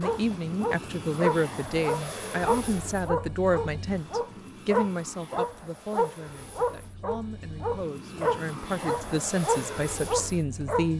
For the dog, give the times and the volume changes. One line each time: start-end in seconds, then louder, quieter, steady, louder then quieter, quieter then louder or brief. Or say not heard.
0.0-10.9 steady.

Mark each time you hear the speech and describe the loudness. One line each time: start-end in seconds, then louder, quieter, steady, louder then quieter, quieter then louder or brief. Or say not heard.
0.0-10.9 quieter then louder.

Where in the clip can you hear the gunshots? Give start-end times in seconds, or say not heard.
not heard.